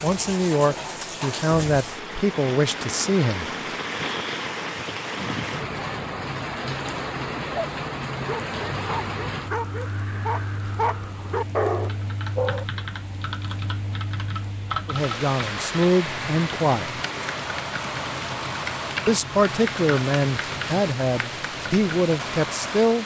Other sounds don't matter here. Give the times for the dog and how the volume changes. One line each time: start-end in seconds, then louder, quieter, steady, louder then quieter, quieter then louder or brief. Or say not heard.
7.5-12.7 louder.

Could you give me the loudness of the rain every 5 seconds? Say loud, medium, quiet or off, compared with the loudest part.
loud, loud, medium, loud, loud.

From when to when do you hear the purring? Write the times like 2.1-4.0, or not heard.
not heard.